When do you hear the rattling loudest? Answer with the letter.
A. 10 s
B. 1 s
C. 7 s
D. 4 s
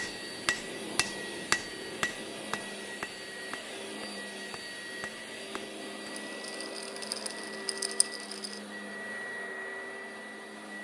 C.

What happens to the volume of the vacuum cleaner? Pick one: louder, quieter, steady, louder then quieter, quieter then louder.
steady.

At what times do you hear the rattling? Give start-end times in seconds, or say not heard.
6.2-8.6.